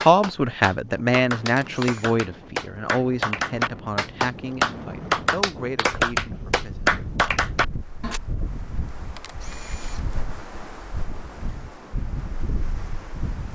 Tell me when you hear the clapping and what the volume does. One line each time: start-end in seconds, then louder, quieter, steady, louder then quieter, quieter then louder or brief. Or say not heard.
0.0-8.2 louder.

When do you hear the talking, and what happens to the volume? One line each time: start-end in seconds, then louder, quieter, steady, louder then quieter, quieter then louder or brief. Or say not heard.
0.0-6.9 quieter.